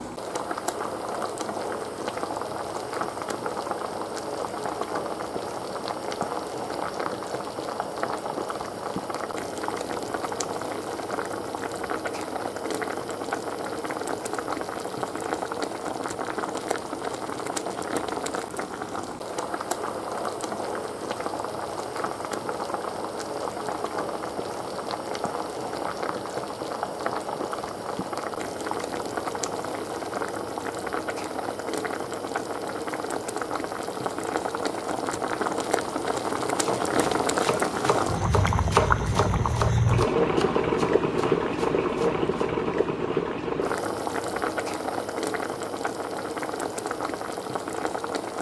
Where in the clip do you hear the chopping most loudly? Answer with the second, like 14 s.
39 s.